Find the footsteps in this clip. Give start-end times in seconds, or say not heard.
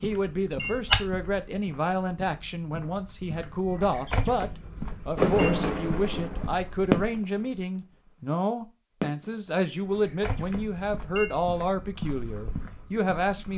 0.0-7.2, 9.8-13.5.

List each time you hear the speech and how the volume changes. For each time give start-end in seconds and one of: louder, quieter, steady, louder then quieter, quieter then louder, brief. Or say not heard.
0.0-13.5 steady.